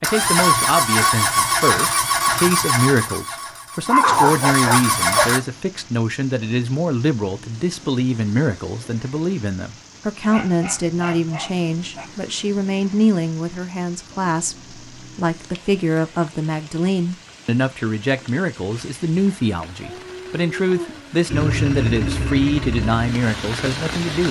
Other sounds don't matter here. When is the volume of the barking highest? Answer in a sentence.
The loudest moment of the barking is at 4 seconds.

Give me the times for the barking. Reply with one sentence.
You can hear the barking from 3.9 to 5.2 s, from 10.2 to 12.1 s and from 19.8 to 21.2 s.